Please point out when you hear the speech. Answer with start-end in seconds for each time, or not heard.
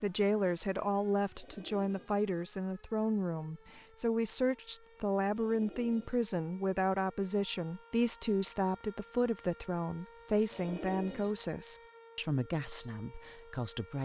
0.0-13.9.